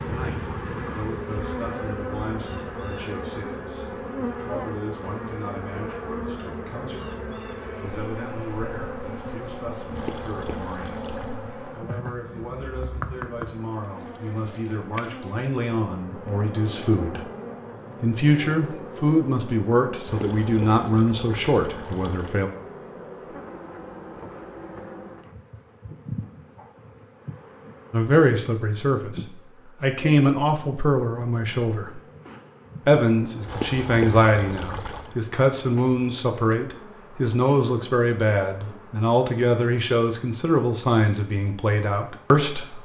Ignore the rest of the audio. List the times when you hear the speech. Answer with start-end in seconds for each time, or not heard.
0.1-17.2, 18.0-22.5, 27.9-32.0, 32.9-42.8.